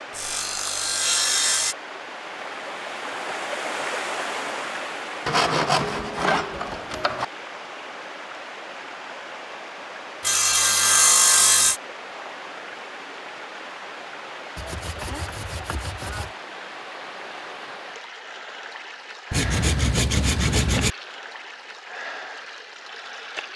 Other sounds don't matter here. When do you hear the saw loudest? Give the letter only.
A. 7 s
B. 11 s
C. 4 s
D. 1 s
B.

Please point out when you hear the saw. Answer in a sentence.
The saw can be heard from 0.1 to 1.8 s, from 5.2 to 7.2 s, from 10.2 to 11.8 s, from 14.6 to 16.3 s and from 19.3 to 20.9 s.